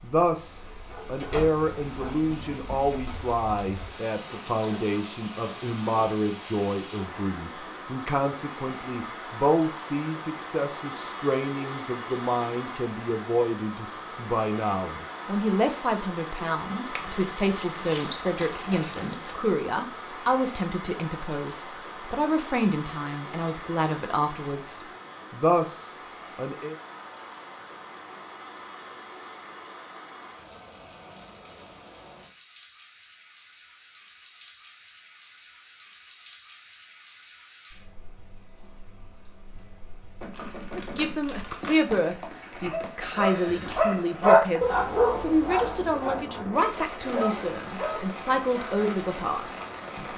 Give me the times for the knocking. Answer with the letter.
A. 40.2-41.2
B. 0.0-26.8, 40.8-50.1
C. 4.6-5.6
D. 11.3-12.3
A.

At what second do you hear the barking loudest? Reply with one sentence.
The loudest moment of the barking is at 44 seconds.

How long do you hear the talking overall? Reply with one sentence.
You can hear the talking for 36 seconds altogether.